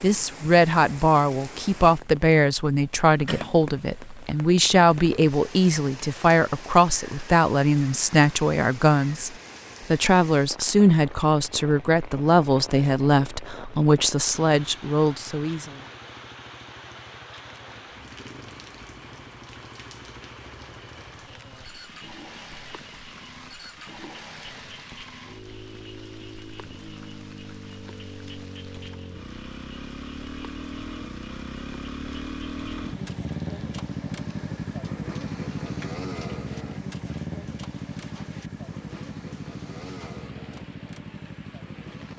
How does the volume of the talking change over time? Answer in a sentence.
The loudness of the talking stays about the same.